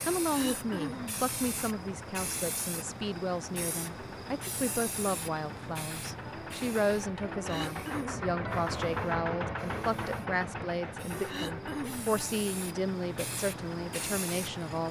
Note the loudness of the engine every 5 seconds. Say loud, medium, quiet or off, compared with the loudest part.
medium, loud, medium.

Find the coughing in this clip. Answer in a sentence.
The coughing can be heard from 0.3 to 1.2 s, from 7.5 to 8.2 s and from 11.2 to 12.2 s.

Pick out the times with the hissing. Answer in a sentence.
You can hear the hissing from 0.0 to 14.8 s.